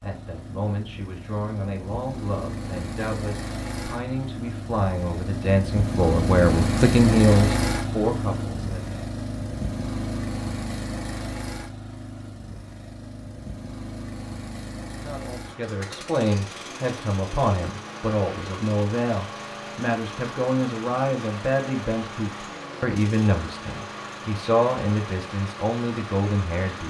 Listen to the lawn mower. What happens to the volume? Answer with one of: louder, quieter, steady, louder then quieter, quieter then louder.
louder then quieter.